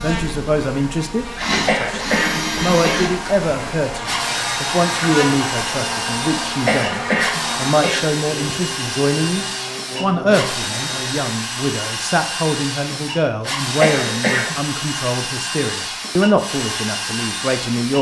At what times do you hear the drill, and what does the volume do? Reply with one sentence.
You can hear the drill from 0.0 to 17.9 s, at a steady volume.